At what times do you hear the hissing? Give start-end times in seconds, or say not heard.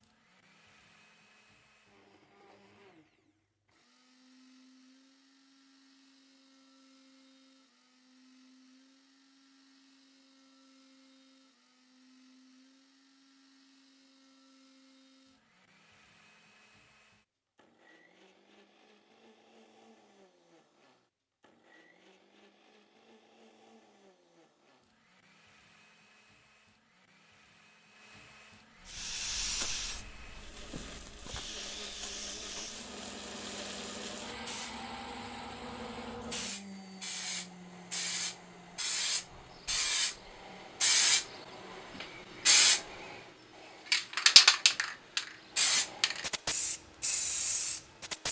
28.9-48.2.